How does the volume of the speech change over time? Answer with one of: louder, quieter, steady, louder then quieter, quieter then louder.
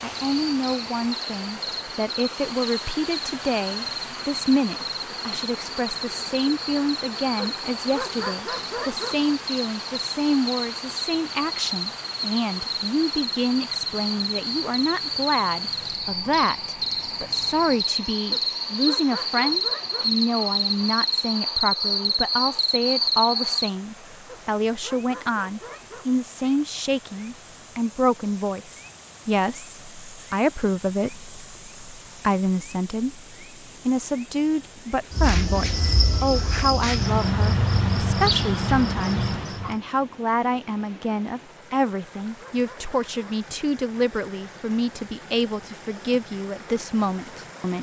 steady.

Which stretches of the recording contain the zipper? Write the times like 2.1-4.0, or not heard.
not heard.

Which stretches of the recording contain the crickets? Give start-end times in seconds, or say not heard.
0.2-39.8.